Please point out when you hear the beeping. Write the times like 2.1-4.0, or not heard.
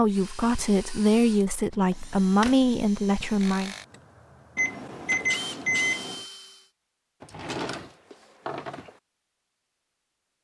4.5-6.2.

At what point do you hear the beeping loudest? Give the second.
6 s.